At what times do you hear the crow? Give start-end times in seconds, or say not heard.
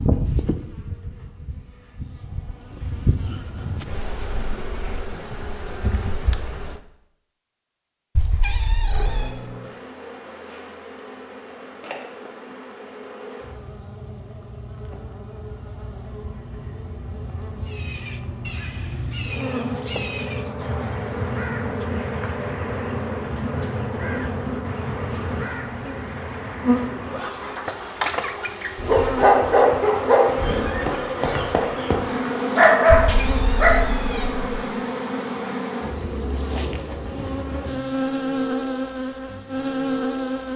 17.6-27.6.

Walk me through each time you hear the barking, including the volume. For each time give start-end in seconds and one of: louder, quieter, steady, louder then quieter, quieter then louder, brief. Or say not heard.
28.8-33.8 quieter then louder.